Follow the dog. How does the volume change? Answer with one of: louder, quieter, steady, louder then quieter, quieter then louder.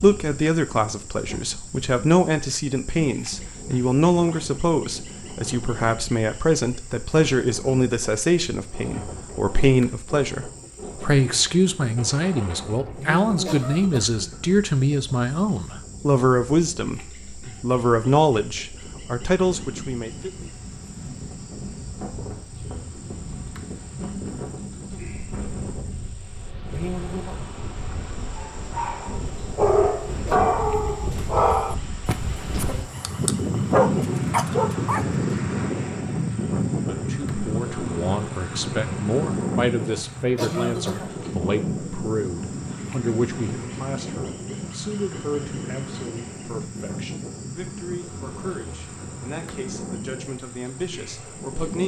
quieter then louder.